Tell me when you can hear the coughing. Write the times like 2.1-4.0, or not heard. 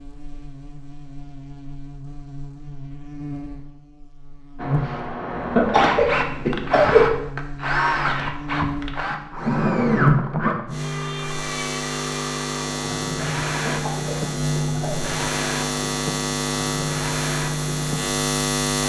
5.5-7.2, 13.7-15.0.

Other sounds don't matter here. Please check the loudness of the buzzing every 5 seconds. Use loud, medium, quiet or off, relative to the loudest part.
medium, medium, loud, loud.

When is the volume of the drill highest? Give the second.
10 s.